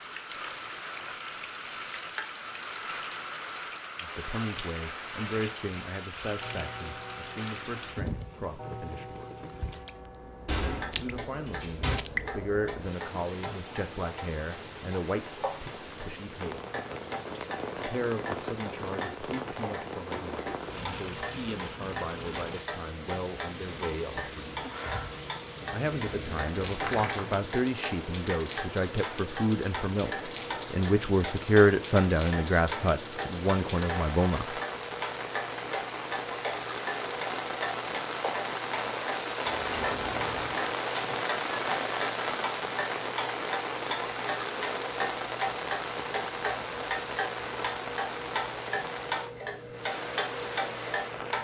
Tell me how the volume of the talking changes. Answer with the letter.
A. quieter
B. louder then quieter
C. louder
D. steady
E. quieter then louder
C.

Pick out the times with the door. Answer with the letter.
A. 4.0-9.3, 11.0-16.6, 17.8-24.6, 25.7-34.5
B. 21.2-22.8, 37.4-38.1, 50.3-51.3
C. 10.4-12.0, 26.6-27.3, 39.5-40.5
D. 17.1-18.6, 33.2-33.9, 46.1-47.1
C.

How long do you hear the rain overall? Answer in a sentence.
You can hear the rain for 51 seconds altogether.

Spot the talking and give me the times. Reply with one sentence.
The talking can be heard from 4.0 to 9.3 s, from 11.0 to 16.6 s, from 17.8 to 24.6 s and from 25.7 to 34.5 s.